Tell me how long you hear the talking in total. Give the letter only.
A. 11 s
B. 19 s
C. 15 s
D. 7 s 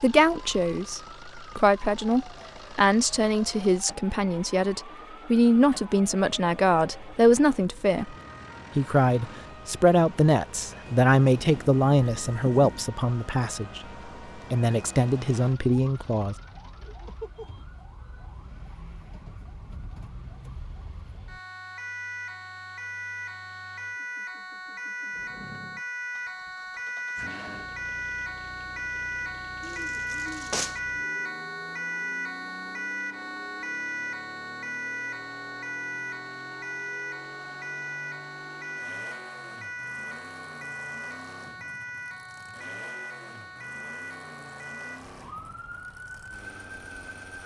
C.